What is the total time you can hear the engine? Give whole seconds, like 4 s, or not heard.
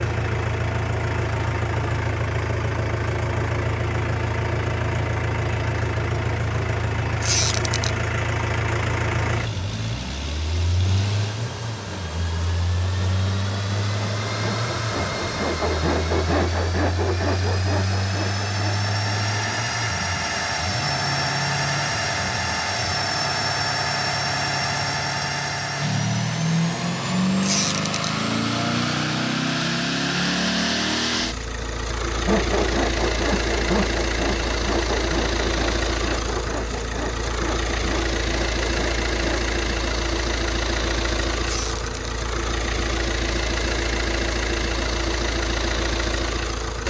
47 s.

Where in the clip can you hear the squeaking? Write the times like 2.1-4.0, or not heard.
7.2-7.9, 27.4-27.9, 41.4-42.1.